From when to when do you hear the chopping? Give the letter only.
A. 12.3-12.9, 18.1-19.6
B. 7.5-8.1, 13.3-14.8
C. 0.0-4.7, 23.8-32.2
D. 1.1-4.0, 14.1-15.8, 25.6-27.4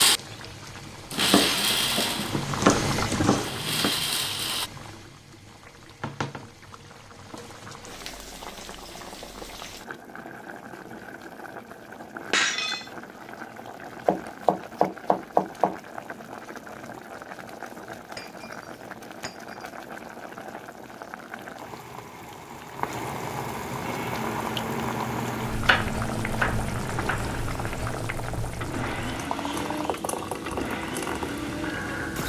D.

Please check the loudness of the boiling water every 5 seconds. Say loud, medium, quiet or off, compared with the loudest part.
loud, medium, medium, medium, loud, loud, loud.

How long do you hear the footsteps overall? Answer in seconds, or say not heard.
not heard.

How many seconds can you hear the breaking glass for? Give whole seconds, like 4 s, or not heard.
2 s.